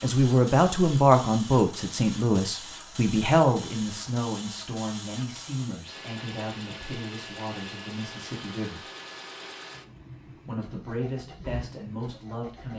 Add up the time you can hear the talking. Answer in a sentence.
You can hear the talking for 11 seconds altogether.